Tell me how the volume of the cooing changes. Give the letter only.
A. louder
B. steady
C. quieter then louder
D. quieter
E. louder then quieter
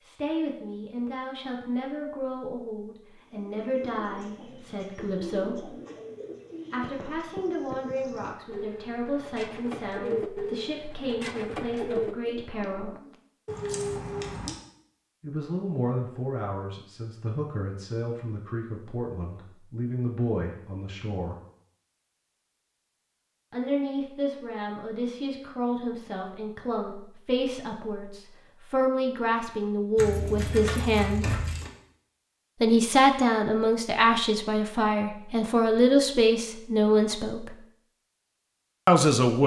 A.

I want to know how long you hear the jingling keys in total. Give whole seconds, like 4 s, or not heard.
3 s.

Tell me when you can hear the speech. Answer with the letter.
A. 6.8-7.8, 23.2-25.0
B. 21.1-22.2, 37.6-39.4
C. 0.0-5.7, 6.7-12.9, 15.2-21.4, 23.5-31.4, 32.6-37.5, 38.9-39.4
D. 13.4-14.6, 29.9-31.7
C.